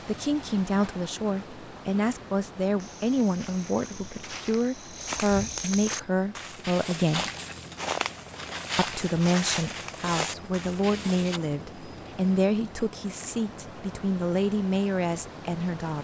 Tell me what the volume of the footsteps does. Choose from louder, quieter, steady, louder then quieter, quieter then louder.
louder.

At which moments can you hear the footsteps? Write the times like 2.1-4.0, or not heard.
2.8-11.4.